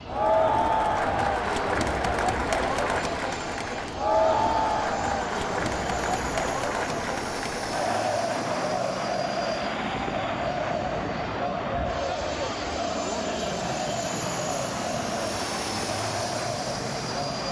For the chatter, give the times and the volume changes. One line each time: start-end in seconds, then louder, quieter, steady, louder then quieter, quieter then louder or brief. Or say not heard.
0.0-17.4 quieter.